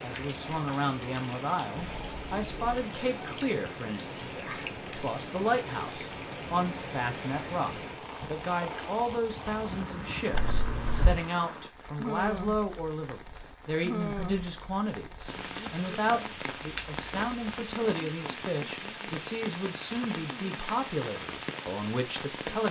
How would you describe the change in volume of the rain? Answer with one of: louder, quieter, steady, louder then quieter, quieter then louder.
steady.